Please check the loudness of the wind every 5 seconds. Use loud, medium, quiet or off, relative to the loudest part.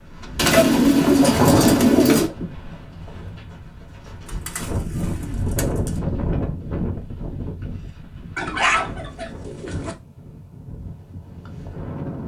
medium, loud, medium.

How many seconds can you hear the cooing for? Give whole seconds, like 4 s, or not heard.
5 s.